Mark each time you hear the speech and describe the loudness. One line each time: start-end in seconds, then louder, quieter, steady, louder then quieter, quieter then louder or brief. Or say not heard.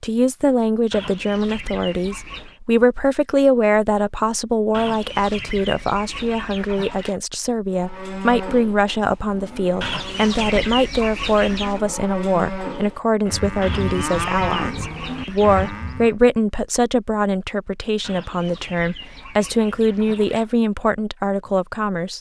0.0-22.1 steady.